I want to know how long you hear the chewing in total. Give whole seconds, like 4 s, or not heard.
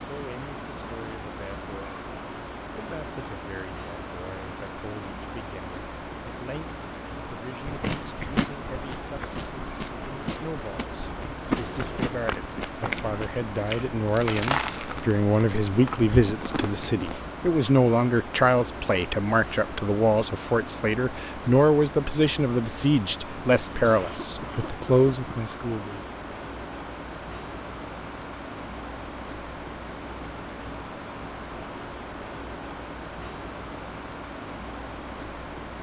10 s.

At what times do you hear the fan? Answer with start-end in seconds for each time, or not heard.
0.0-35.7.